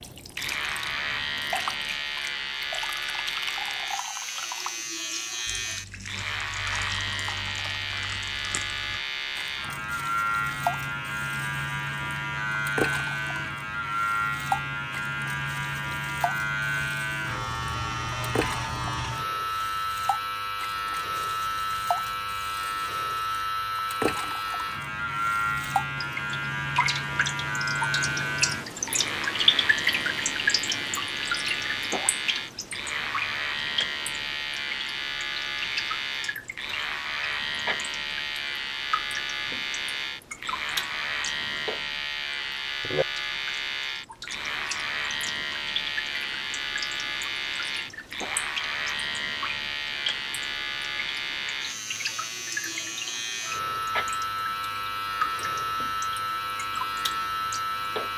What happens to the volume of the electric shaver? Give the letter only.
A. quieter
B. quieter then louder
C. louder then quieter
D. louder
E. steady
E.